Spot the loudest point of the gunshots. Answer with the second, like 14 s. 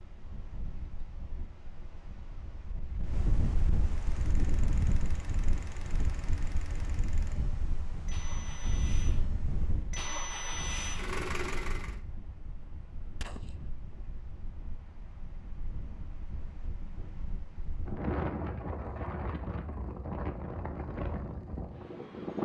13 s.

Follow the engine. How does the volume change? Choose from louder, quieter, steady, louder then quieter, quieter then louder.
louder.